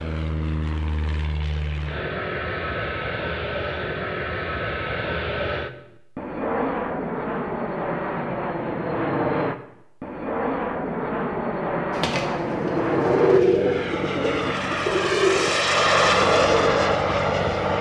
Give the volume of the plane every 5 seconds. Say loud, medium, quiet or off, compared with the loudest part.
medium, medium, medium, loud.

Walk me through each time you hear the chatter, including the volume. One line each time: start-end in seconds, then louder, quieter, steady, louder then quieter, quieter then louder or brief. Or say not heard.
not heard.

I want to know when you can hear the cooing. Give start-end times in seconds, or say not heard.
11.9-16.9.